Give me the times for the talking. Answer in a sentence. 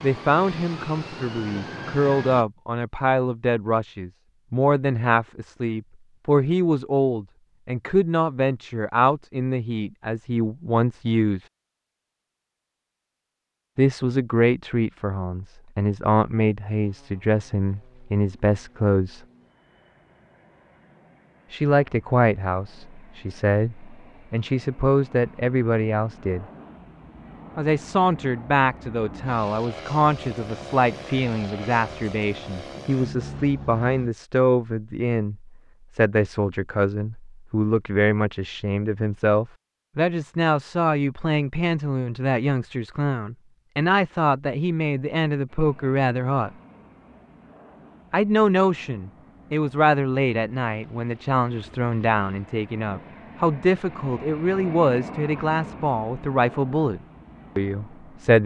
You can hear the talking from 0.0 to 11.4 s, from 13.8 to 19.2 s, from 21.5 to 26.4 s, from 27.6 to 46.5 s and from 48.1 to 58.4 s.